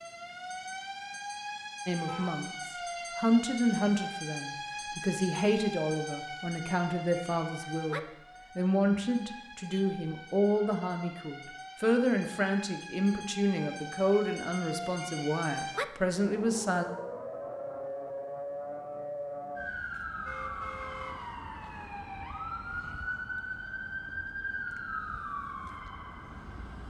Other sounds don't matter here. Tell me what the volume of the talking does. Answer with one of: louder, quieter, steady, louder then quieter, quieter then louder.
steady.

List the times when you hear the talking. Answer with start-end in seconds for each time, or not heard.
1.9-16.9.